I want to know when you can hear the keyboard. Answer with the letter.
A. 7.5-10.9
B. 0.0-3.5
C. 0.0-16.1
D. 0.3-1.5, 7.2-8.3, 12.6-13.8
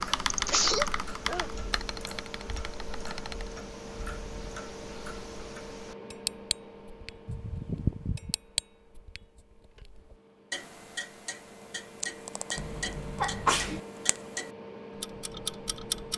B.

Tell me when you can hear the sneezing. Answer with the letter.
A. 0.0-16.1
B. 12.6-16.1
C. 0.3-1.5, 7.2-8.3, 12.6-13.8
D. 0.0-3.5
C.